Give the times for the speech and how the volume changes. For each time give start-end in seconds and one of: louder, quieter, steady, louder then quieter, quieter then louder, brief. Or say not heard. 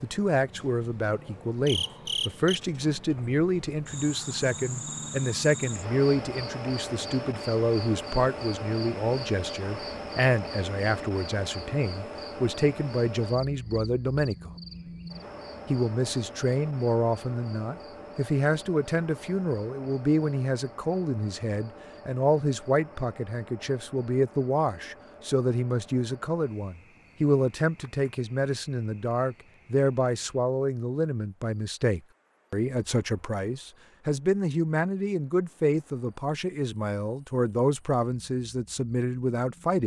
0.0-14.5 steady
15.7-39.8 steady.